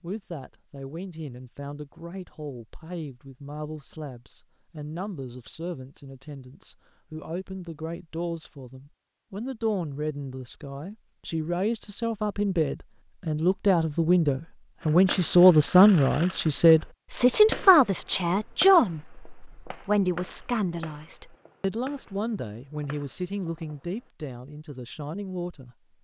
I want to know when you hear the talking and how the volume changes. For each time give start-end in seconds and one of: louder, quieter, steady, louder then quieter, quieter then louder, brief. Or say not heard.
0.0-25.8 louder then quieter.